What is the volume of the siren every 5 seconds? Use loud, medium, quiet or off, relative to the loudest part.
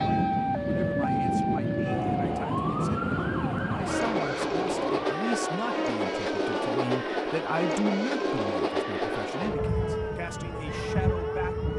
loud, medium, quiet.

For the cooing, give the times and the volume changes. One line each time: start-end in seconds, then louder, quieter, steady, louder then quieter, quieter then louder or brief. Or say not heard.
not heard.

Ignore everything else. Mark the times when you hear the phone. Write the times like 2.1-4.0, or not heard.
not heard.